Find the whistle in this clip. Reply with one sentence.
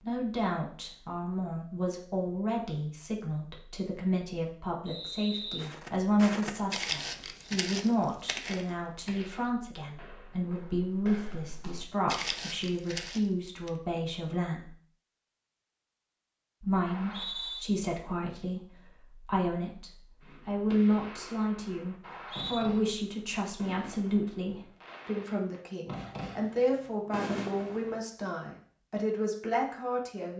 You can hear the whistle from 4.8 to 5.7 s, from 16.9 to 17.6 s and from 22.0 to 22.6 s.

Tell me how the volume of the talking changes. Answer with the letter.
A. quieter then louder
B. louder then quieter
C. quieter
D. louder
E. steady
E.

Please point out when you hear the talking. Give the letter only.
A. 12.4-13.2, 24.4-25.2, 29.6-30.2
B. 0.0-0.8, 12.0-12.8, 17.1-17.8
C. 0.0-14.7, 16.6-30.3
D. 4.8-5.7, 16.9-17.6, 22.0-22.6
C.